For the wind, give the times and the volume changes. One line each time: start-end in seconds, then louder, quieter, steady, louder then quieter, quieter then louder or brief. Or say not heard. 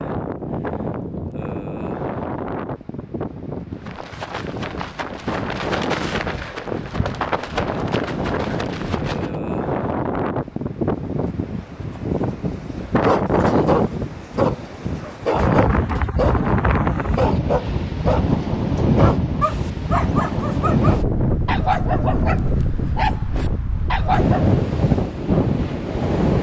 0.0-26.3 louder.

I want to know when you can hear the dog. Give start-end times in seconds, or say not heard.
12.8-16.5, 17.1-24.5.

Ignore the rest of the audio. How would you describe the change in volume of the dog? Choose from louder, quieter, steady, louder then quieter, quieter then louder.
steady.